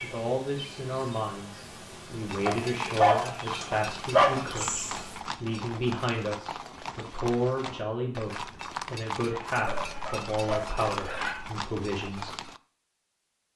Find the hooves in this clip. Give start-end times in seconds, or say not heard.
2.2-12.6.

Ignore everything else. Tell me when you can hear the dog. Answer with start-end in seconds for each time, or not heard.
2.5-4.5, 9.7-11.5.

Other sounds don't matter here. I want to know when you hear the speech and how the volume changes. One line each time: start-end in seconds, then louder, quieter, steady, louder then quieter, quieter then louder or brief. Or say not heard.
0.0-12.3 steady.